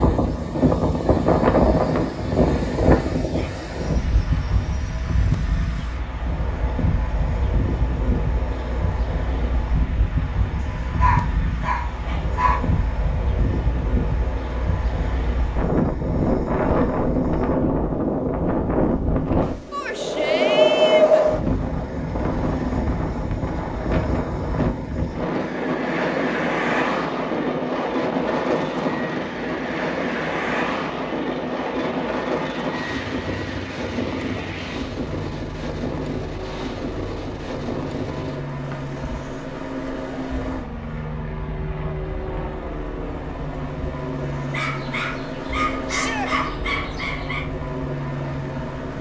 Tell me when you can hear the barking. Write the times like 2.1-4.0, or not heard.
10.6-12.6, 44.5-47.5.